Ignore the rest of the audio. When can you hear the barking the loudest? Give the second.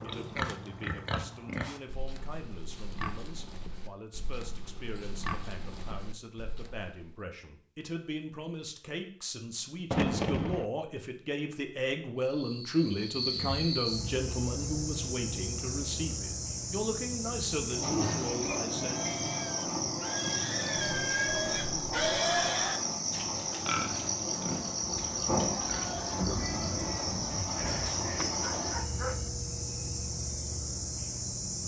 29 s.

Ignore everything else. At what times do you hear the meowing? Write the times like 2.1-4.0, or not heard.
not heard.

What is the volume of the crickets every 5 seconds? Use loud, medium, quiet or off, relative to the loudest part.
off, off, loud, loud, loud, loud, loud.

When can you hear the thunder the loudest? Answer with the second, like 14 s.
10 s.